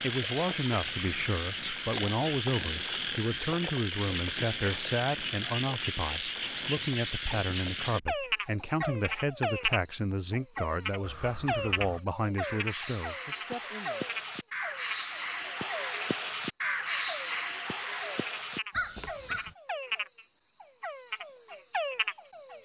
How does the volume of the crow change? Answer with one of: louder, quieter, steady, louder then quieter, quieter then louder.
louder.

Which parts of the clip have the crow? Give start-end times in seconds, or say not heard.
11.0-19.6.